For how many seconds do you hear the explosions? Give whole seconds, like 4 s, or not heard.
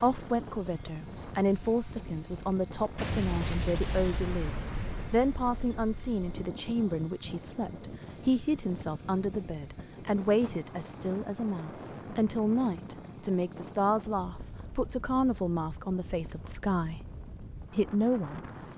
3 s.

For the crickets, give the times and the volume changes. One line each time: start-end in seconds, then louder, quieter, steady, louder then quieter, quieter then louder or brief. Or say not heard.
not heard.